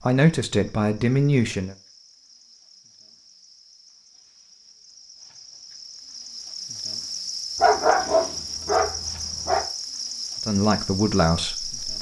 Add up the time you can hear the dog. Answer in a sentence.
You can hear the dog for 2 seconds altogether.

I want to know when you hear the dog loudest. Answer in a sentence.
The volume of the dog peaks at 8 seconds.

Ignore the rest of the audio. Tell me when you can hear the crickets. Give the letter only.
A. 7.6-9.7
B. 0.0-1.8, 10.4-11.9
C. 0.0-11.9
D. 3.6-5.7
C.